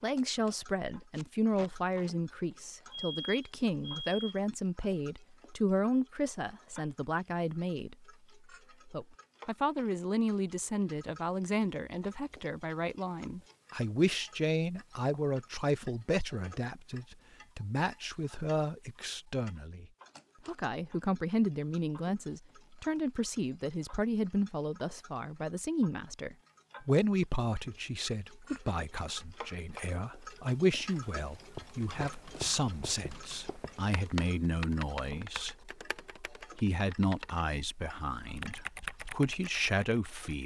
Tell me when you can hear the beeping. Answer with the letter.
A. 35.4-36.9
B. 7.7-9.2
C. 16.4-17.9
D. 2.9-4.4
D.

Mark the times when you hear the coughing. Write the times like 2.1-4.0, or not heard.
not heard.